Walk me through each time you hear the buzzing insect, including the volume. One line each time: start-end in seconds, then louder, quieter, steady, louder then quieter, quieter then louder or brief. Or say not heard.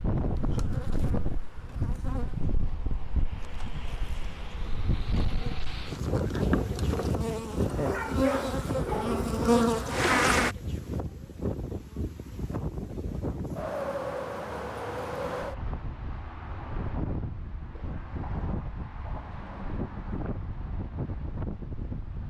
0.1-10.6 quieter then louder.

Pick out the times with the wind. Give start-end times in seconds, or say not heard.
0.0-22.2.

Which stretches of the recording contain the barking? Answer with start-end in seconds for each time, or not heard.
7.8-9.3.